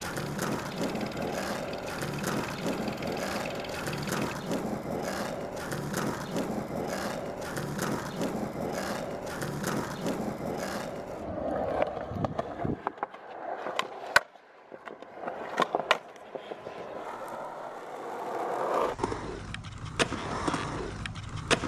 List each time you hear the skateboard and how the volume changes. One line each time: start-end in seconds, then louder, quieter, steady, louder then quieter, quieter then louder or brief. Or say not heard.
0.0-21.6 steady.